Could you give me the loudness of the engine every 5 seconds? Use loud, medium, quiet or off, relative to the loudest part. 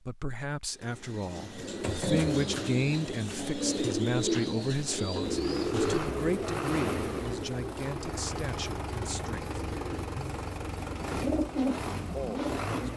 off, loud, loud.